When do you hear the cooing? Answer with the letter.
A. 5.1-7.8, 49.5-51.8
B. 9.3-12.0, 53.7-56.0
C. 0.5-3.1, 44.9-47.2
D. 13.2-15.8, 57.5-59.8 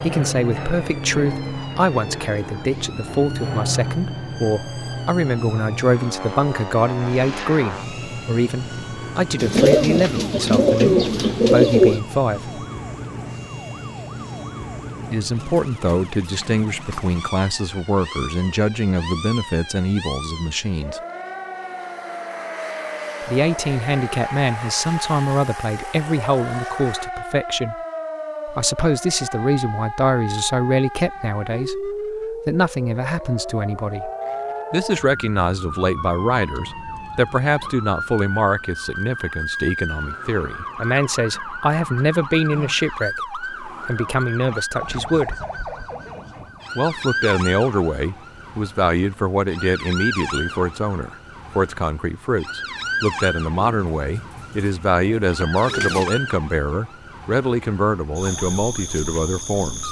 B.